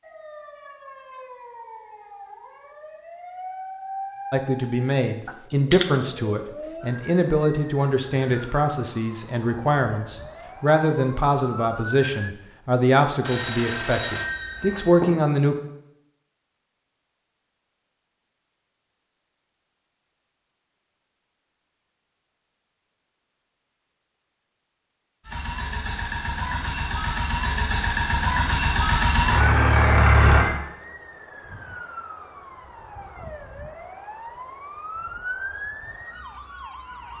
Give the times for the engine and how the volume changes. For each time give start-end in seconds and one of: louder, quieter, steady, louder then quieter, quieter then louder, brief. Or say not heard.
25.2-30.4 louder.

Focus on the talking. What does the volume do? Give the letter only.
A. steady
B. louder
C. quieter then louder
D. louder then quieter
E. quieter
A.